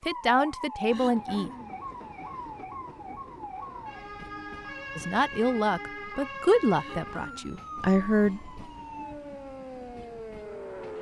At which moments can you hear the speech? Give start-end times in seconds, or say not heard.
0.0-1.5, 5.0-8.5.